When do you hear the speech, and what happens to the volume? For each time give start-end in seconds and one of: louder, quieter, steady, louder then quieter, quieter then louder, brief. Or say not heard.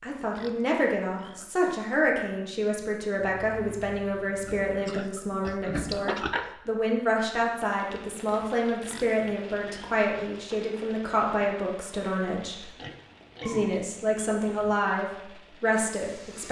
0.0-12.8 steady
13.4-16.4 brief.